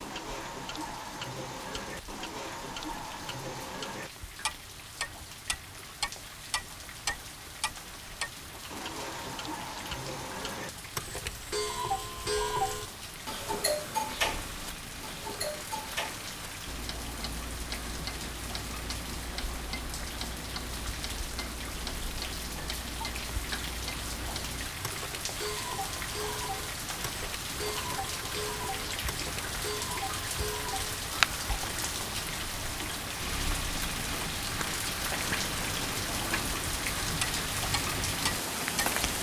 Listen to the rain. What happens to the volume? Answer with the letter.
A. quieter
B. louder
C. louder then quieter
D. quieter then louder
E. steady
B.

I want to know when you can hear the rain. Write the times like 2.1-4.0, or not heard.
0.0-39.1.